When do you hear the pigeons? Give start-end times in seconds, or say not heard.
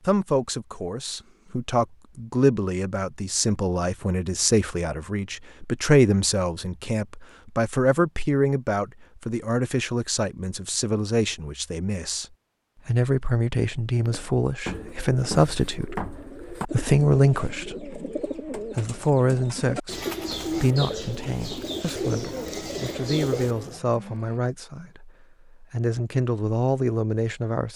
13.9-23.8.